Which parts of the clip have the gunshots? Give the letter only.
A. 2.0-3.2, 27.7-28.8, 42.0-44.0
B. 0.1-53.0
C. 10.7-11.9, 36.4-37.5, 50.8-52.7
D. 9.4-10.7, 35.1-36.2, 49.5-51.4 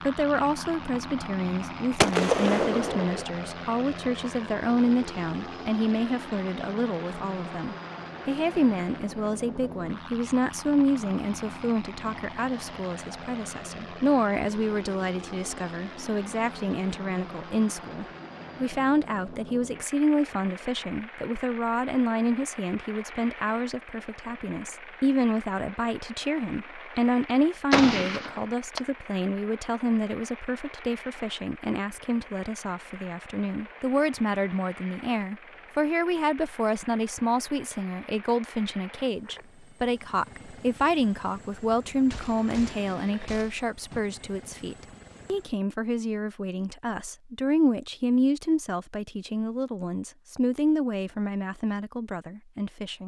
A.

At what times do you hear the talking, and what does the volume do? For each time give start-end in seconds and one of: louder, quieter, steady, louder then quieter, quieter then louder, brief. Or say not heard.
0.1-53.0 steady.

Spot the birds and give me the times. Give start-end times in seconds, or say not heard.
not heard.